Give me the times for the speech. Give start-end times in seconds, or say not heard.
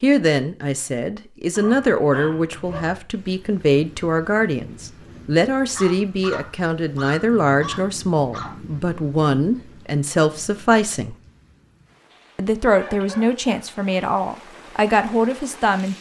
0.0-11.2, 12.3-15.9.